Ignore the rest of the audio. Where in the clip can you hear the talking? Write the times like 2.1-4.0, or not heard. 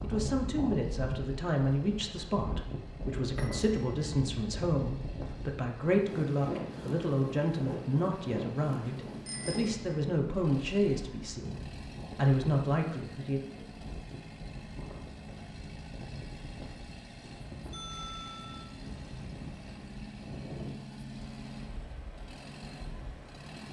0.0-13.4.